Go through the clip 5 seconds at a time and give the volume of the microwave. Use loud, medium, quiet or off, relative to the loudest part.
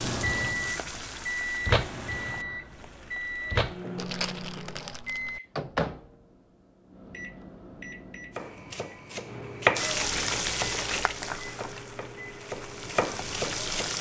loud, medium, quiet.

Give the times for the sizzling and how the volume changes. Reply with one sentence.
You can hear the sizzling from 0.0 to 4.0 s, getting quieter; and from 9.8 to 13.9 s, getting quieter then louder.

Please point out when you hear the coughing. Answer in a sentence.
You can't hear the coughing here.